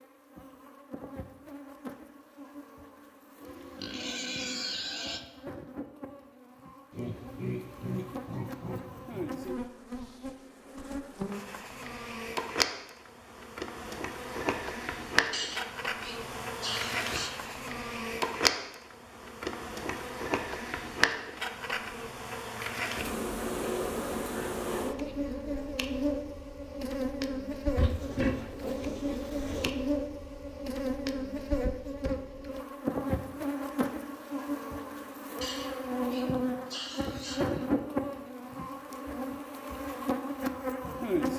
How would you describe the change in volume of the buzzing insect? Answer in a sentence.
The loudness of the buzzing insect goes up.